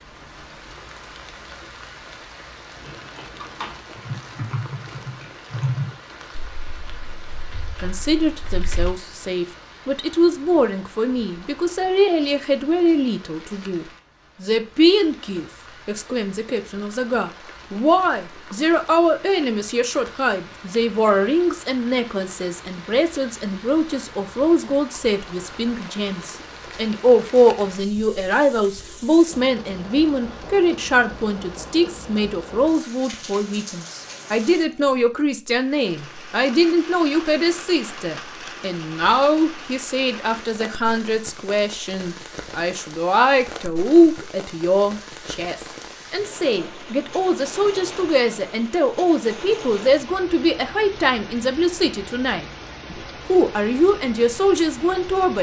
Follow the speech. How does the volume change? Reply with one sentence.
The loudness of the speech stays about the same.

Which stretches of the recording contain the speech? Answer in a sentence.
The speech can be heard from 7.8 to 55.3 s.